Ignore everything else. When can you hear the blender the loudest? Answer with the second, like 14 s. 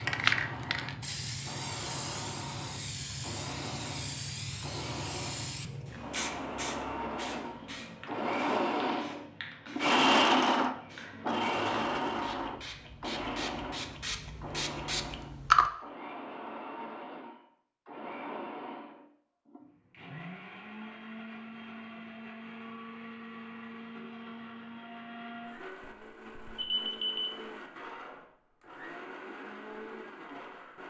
10 s.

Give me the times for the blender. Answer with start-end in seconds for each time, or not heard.
0.0-30.8.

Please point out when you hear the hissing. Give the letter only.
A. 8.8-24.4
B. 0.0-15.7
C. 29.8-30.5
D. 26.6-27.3
B.